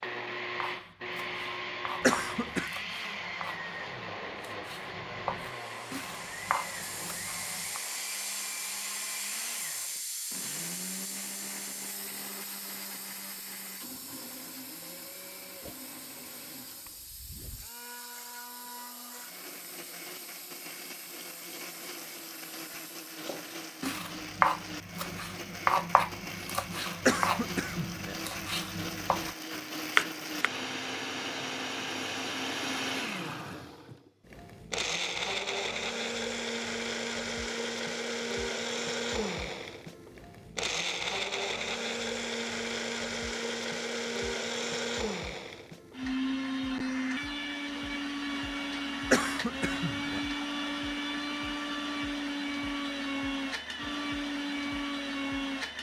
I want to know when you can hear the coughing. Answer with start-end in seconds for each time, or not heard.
2.0-2.7, 27.1-28.1, 49.1-50.2.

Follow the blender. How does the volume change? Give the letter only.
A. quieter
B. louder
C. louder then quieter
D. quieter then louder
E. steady
D.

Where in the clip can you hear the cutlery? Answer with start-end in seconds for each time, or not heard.
not heard.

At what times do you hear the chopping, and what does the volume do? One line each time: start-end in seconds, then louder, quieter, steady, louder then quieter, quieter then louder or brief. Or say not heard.
0.6-7.8 quieter then louder
23.2-30.5 quieter then louder.